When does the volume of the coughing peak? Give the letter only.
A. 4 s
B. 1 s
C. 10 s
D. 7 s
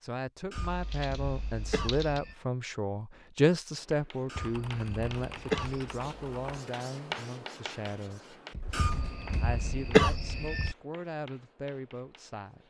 C.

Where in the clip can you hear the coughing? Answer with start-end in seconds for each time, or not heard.
0.5-2.4, 4.2-5.8, 8.7-10.8.